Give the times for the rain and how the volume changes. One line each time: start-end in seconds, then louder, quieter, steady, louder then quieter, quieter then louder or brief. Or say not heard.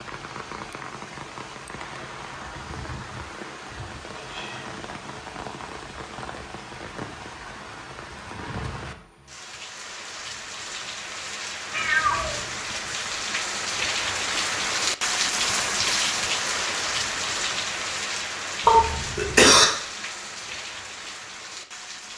0.0-22.1 louder then quieter.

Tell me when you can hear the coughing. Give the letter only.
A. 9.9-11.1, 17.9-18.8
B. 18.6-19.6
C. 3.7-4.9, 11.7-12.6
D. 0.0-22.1
B.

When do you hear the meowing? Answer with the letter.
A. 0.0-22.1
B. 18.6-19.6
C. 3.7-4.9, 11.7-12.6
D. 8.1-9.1
C.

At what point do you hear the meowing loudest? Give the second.
12 s.